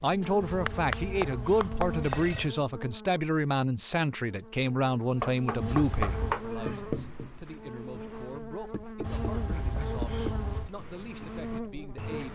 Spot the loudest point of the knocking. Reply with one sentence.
The loudest moment of the knocking is at 6 seconds.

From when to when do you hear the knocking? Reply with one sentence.
The knocking can be heard from 0.2 to 2.2 s, from 5.2 to 6.4 s and from 8.7 to 10.4 s.